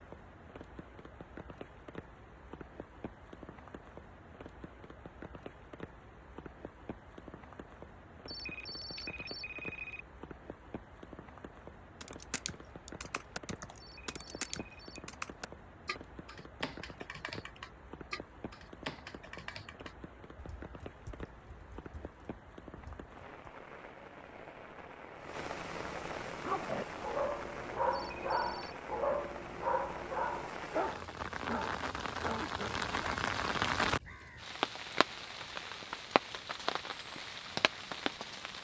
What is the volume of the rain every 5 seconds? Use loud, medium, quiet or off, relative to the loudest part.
quiet, quiet, quiet, quiet, quiet, medium, loud, loud.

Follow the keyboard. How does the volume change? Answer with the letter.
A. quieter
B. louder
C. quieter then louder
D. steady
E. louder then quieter
A.